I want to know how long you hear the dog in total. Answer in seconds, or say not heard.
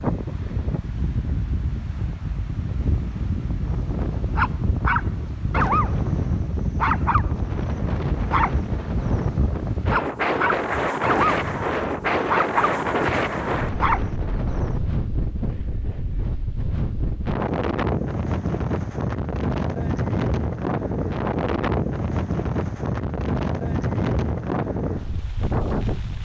11 s.